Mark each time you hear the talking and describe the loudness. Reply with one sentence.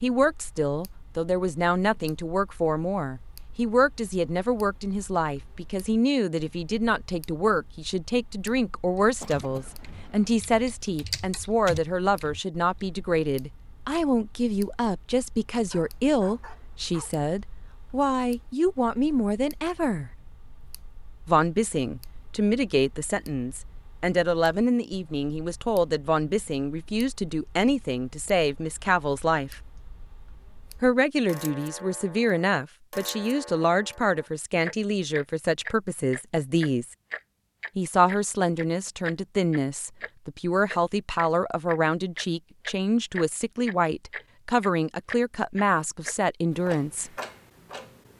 The talking can be heard from 0.0 to 20.1 s, at a steady volume; from 21.2 to 29.6 s, at a steady volume; from 30.8 to 37.0 s, at a steady volume; and from 37.8 to 47.1 s, at a steady volume.